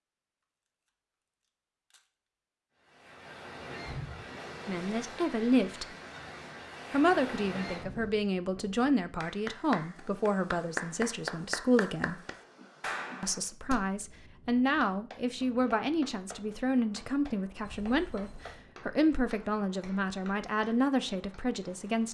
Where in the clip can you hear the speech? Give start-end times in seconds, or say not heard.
4.7-5.8, 6.9-12.2, 13.2-22.0.